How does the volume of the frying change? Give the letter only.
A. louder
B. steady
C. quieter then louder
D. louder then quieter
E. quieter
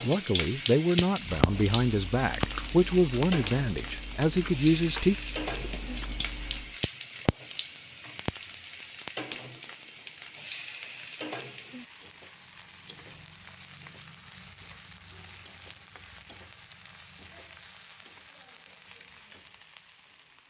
E.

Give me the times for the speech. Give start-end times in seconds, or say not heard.
0.0-5.2.